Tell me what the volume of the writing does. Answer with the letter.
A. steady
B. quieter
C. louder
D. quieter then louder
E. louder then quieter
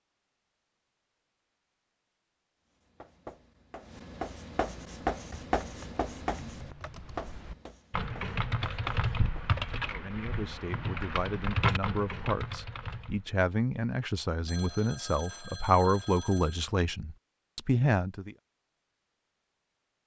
E.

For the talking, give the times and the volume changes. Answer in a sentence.
You can hear the talking from 9.9 to 18.4 s, getting louder.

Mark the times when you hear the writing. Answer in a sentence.
The writing can be heard from 2.7 to 9.6 s.